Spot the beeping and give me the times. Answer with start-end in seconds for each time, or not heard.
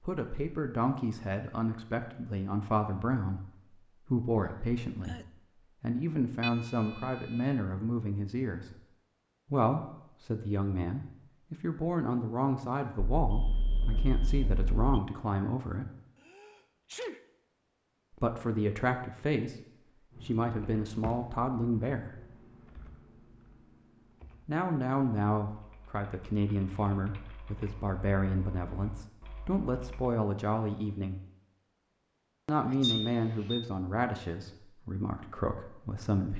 6.4-7.5, 13.2-14.8, 32.8-33.6.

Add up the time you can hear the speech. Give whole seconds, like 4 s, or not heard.
29 s.